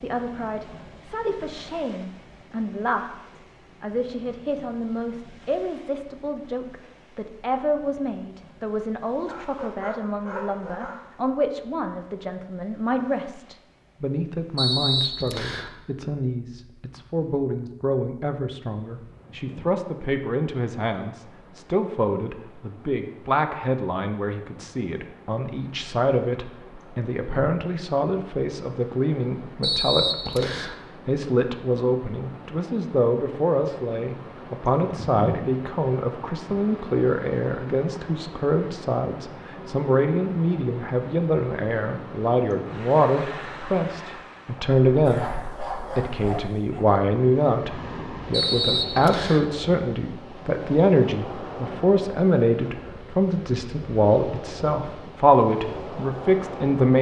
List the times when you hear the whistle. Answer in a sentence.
The whistle can be heard from 14.6 to 15.7 s, from 29.6 to 30.8 s and from 48.3 to 49.5 s.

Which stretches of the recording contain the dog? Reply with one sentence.
The dog can be heard from 9.2 to 11.2 s and from 45.0 to 46.9 s.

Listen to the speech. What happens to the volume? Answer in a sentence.
The volume of the speech goes up.